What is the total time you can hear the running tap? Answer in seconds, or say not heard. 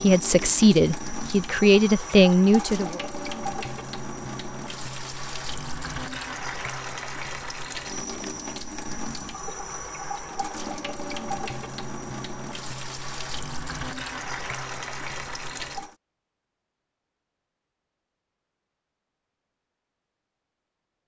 16 s.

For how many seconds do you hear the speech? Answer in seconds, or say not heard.
3 s.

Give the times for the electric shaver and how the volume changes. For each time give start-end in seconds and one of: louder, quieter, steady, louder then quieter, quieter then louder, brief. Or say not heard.
not heard.